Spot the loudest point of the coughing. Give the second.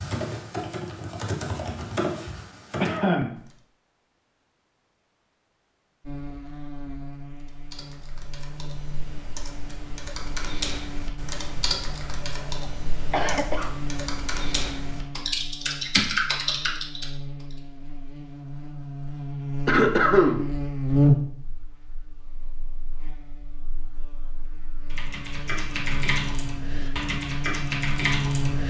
20 s.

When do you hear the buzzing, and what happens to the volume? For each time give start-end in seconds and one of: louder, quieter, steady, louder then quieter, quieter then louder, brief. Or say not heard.
6.0-28.6 louder then quieter.